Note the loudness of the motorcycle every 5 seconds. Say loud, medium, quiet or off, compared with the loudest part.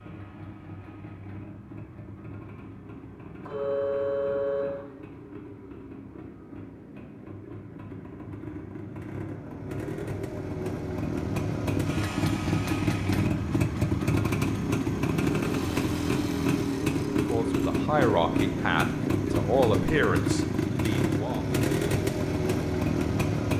quiet, quiet, loud, loud, loud.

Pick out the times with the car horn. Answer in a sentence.
The car horn can be heard from 3.5 to 4.8 s.